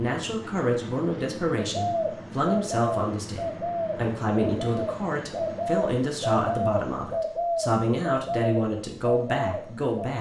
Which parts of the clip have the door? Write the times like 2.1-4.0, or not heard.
not heard.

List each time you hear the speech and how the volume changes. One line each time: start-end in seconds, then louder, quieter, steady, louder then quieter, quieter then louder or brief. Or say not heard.
0.0-10.1 steady.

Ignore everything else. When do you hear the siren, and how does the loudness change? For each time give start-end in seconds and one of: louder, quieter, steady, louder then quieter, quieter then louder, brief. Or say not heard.
not heard.